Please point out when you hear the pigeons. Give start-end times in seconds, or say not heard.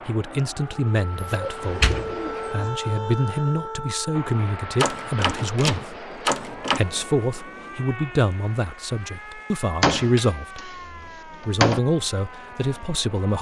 1.2-2.7.